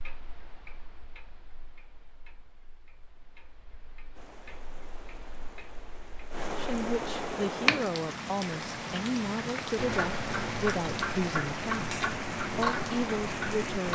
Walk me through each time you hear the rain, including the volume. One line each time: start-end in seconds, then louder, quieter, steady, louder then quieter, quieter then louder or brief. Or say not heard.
4.2-13.9 louder.